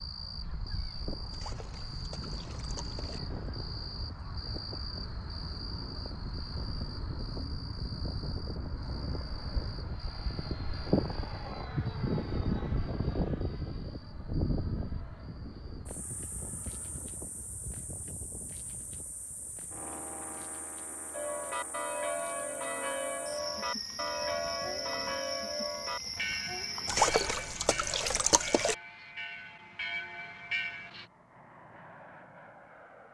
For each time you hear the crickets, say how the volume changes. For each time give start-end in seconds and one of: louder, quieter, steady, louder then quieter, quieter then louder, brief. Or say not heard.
0.0-27.1 quieter then louder.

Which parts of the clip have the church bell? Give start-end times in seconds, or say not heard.
21.1-31.1.